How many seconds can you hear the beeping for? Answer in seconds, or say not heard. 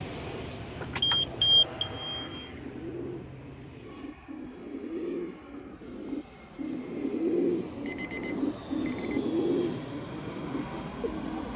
3 s.